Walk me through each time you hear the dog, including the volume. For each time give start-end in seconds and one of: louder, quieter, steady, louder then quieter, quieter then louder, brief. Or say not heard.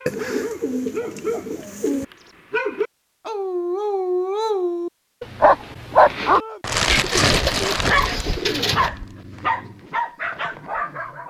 0.0-11.2 louder then quieter.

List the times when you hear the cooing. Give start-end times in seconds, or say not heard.
0.1-2.0, 6.8-8.9.